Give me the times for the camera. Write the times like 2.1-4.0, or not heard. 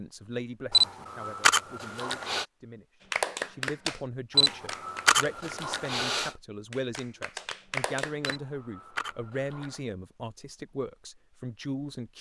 0.7-2.5, 4.3-6.3, 8.2-9.8.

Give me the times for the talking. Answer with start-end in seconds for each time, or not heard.
0.0-12.1.